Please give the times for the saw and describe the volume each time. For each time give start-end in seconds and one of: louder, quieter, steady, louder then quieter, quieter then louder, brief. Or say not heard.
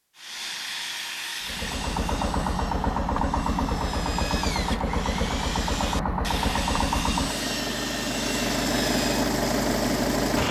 0.1-9.3 quieter then louder.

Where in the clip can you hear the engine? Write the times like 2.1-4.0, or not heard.
1.4-10.4.